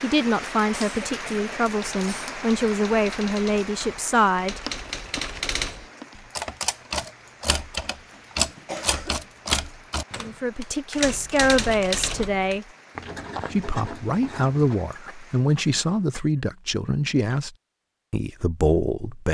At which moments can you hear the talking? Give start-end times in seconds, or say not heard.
0.0-4.6, 10.2-12.7, 13.5-17.5, 18.1-19.3.